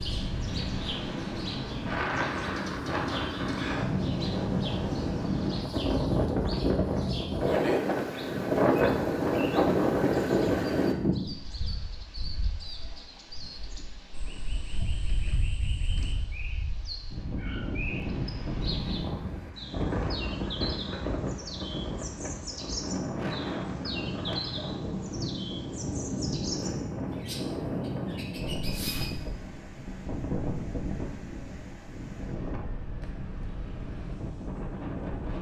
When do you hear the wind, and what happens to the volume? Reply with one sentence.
The wind can be heard from 0.0 to 35.3 s, getting quieter.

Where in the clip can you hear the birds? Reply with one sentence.
The birds can be heard from 0.0 to 29.1 s.